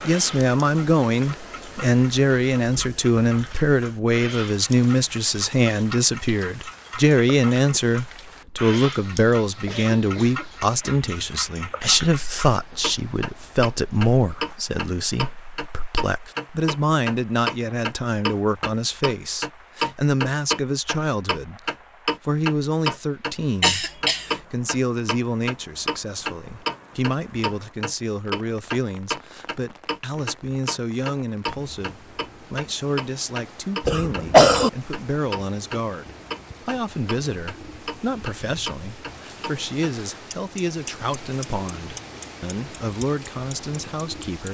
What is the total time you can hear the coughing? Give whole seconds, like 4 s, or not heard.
3 s.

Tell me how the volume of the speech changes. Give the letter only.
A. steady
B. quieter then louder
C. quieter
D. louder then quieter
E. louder
C.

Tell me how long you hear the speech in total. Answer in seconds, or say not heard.
44 s.